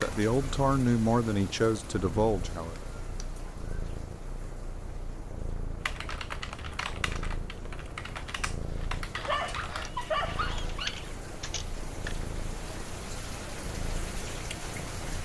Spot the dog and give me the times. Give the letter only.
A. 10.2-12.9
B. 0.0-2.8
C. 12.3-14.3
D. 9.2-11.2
D.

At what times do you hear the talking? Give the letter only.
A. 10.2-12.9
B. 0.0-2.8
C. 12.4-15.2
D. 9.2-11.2
B.